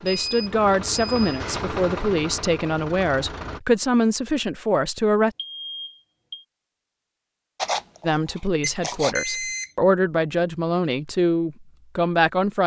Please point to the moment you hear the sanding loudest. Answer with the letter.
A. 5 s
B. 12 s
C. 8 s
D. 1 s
C.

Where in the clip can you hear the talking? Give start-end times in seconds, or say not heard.
0.0-5.3, 8.1-12.6.